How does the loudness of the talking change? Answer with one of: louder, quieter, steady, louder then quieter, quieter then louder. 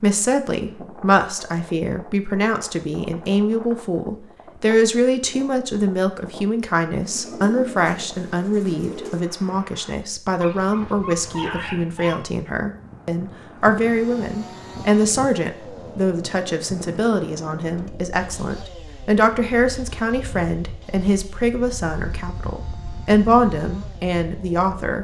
steady.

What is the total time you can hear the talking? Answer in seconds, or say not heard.
25 s.